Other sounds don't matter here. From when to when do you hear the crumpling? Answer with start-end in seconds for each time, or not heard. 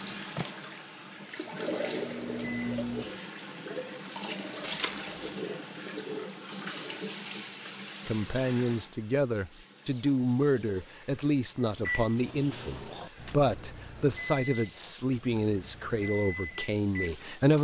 4.6-5.4.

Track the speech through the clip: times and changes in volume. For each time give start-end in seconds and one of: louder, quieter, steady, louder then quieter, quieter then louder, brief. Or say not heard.
8.1-17.5 steady.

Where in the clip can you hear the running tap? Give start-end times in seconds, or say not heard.
0.0-17.5.